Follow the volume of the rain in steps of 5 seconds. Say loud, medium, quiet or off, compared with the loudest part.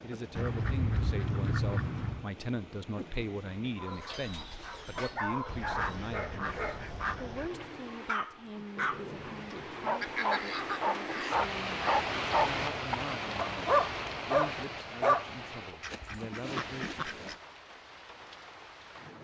quiet, medium, loud, medium.